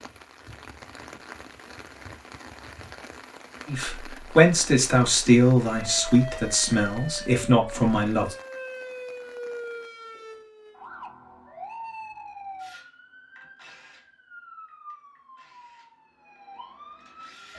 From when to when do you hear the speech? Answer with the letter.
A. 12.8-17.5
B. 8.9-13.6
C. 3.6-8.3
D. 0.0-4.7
C.